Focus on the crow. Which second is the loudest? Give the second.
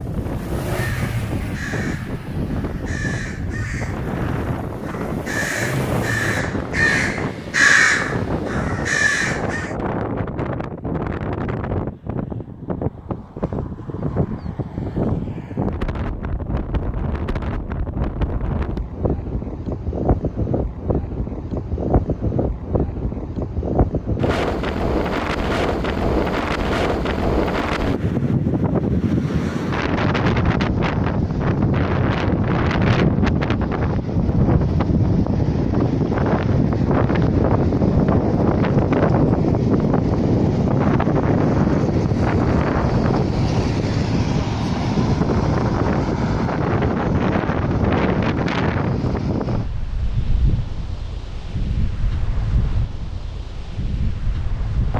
8 s.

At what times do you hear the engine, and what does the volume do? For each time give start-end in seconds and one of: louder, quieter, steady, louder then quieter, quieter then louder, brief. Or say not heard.
0.0-6.4 quieter then louder.